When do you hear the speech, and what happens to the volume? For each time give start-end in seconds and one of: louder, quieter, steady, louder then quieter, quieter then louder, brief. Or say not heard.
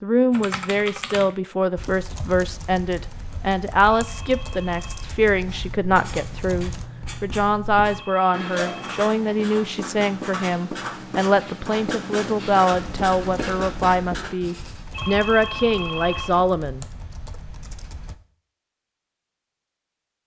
0.0-16.9 steady.